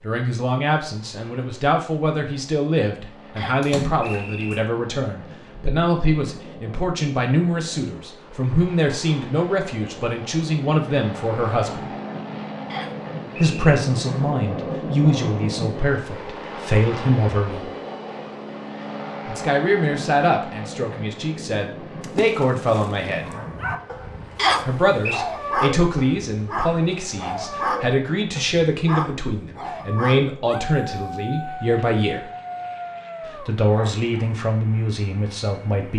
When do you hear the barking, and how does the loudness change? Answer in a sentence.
The barking can be heard from 23.1 to 34.3 s, getting quieter.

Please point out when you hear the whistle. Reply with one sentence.
The whistle can be heard from 3.4 to 4.6 s, from 12.7 to 13.7 s and from 24.4 to 25.2 s.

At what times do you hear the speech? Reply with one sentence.
The speech can be heard from 0.0 to 11.9 s, from 13.3 to 17.7 s, from 19.2 to 23.2 s, from 24.6 to 32.3 s and from 33.2 to 35.9 s.